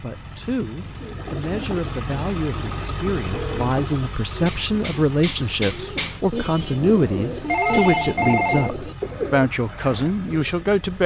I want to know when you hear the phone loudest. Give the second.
8 s.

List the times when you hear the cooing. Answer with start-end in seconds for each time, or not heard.
0.9-10.5.